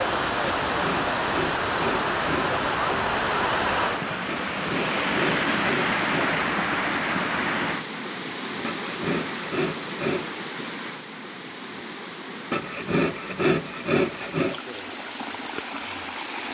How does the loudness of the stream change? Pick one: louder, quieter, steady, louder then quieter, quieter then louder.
quieter.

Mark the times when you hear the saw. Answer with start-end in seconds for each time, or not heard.
0.7-2.5, 4.5-6.3, 8.6-10.3, 12.5-14.6.